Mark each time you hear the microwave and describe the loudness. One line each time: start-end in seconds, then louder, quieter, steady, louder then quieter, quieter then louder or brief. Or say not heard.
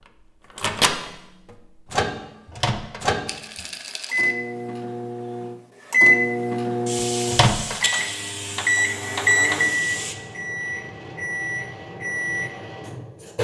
0.6-13.3 louder then quieter.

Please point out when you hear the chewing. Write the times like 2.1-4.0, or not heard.
not heard.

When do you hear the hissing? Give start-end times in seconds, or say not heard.
6.8-10.2.